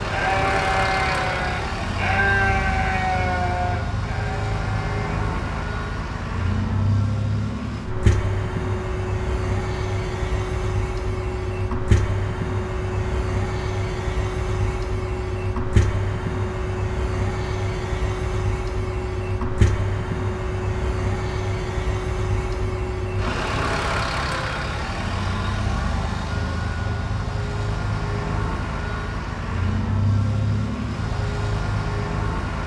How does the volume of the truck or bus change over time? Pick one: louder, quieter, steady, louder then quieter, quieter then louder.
steady.